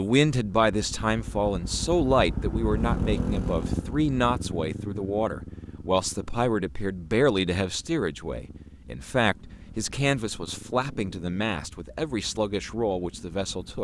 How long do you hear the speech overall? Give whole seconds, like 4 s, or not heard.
14 s.